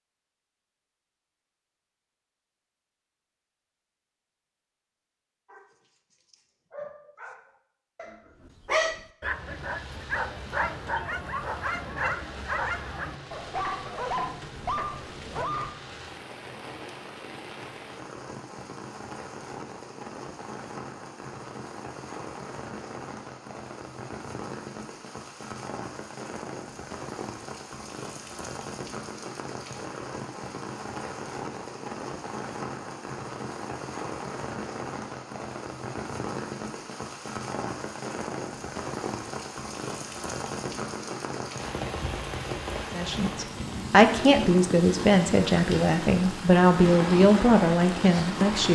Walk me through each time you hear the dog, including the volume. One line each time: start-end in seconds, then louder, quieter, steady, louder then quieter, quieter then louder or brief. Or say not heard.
5.5-15.8 louder.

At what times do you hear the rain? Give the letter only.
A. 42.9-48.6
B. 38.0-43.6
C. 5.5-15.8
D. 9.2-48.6
D.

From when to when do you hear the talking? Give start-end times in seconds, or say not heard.
42.9-48.6.